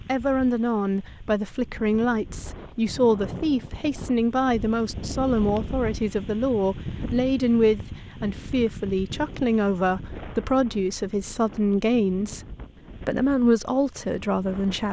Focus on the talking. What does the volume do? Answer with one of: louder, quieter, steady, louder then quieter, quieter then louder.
steady.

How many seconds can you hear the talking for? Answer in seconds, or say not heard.
15 s.